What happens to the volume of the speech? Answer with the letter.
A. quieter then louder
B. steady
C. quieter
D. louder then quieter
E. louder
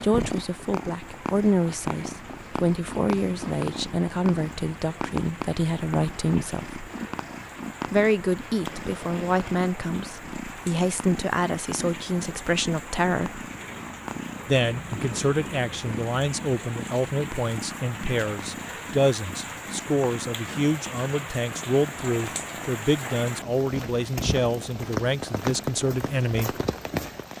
B.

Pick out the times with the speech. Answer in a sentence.
You can hear the speech from 0.0 to 6.8 s, from 7.8 to 13.4 s and from 14.4 to 26.5 s.